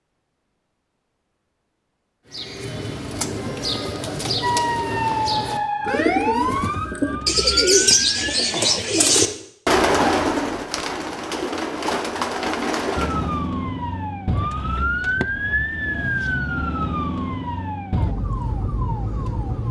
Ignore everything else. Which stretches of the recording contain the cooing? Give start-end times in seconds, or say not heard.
2.3-13.4.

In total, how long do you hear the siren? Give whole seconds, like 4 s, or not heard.
11 s.